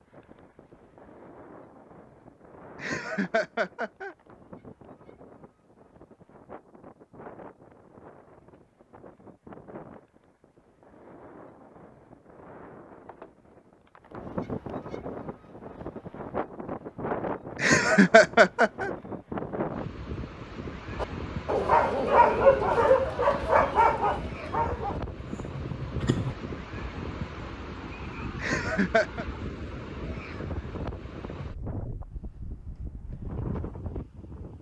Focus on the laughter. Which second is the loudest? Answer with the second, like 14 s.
18 s.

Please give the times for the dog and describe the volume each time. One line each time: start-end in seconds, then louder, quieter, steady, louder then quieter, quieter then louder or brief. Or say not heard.
21.0-26.4 quieter.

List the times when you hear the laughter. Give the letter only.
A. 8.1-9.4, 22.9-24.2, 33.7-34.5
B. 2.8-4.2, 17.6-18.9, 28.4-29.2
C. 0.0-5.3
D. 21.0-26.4
B.